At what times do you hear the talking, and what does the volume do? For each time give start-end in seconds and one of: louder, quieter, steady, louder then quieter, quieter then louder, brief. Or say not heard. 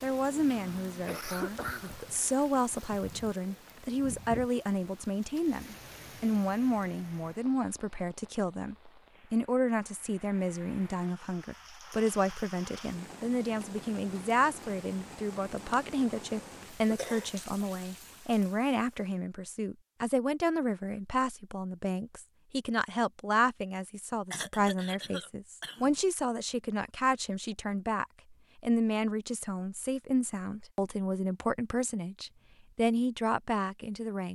0.0-34.3 steady.